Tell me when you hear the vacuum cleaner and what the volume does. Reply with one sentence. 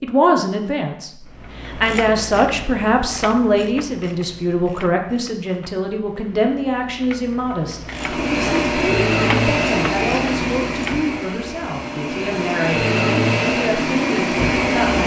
The vacuum cleaner can be heard from 7.8 to 15.0 s, getting quieter then louder.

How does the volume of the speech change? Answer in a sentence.
The volume of the speech goes down.